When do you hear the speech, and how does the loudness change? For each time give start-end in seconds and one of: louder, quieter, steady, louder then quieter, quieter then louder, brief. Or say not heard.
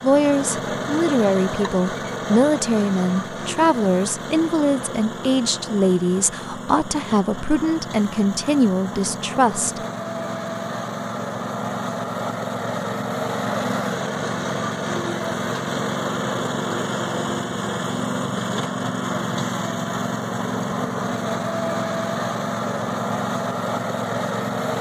0.0-9.8 steady.